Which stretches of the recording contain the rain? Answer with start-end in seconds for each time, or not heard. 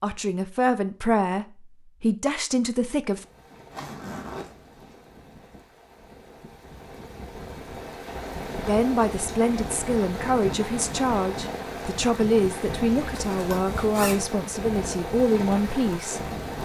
3.0-16.6.